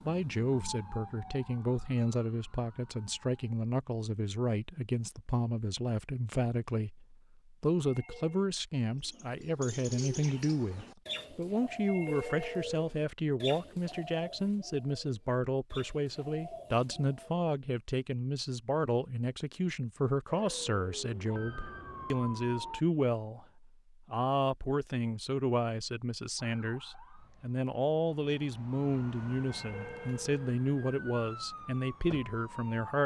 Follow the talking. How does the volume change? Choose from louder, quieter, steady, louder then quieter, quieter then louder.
steady.